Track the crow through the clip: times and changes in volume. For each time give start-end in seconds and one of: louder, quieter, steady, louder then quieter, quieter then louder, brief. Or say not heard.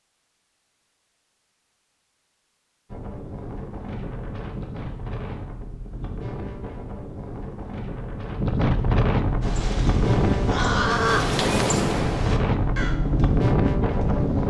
9.4-14.4 louder then quieter.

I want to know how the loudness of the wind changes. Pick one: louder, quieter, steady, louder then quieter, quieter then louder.
louder.